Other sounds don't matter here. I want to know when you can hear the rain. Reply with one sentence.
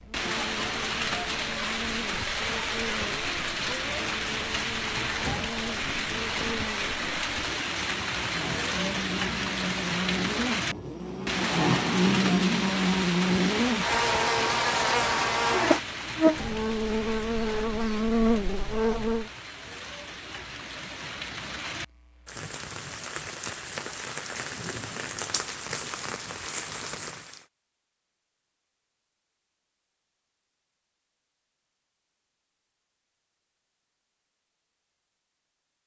The rain can be heard from 0.0 to 27.4 s.